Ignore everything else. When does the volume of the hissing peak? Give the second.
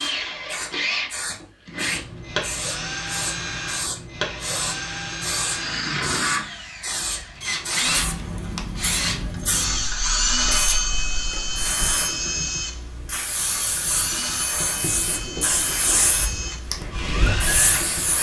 16 s.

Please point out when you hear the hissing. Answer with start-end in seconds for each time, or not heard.
0.0-18.1.